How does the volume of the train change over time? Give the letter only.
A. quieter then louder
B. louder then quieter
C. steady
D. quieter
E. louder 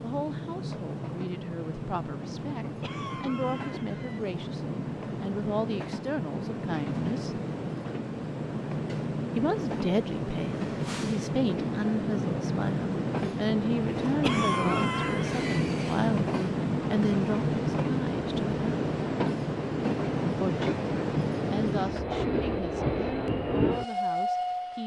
E.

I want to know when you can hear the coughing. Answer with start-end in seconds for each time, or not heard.
2.8-4.2, 14.2-15.6.